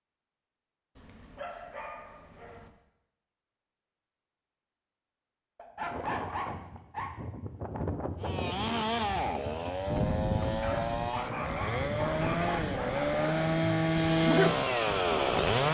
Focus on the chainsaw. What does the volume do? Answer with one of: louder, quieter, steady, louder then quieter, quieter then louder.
louder.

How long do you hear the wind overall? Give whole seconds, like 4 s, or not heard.
10 s.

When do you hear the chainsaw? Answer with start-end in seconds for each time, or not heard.
8.2-15.6.